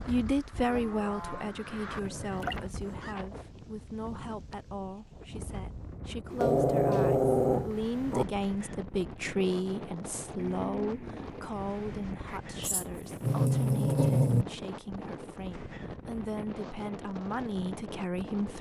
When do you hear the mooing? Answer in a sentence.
You can hear the mooing from 0.6 to 1.5 s and from 10.3 to 12.4 s.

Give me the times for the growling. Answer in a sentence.
The growling can be heard from 1.9 to 3.1 s, from 6.3 to 8.2 s and from 12.6 to 14.4 s.